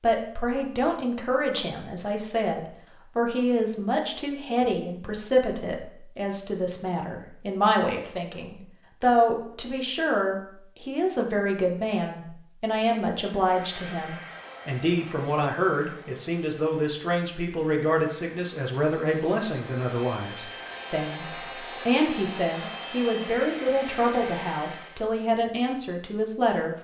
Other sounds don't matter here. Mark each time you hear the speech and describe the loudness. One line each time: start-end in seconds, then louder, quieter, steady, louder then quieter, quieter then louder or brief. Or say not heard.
0.0-26.8 steady.